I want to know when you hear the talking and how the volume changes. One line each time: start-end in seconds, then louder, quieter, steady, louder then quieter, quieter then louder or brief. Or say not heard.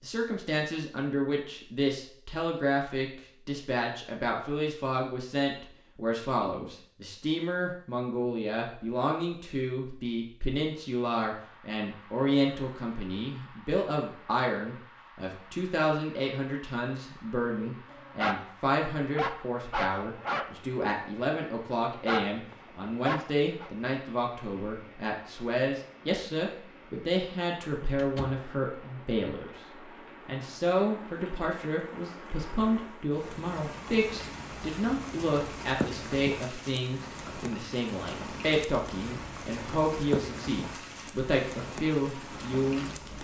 0.0-29.6 steady
30.2-42.9 steady.